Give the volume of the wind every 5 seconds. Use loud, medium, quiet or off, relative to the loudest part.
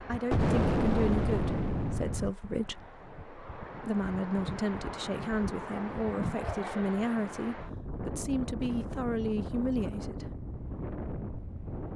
medium, loud, loud.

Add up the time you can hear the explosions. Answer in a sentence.
The explosions can be heard for 2 seconds in total.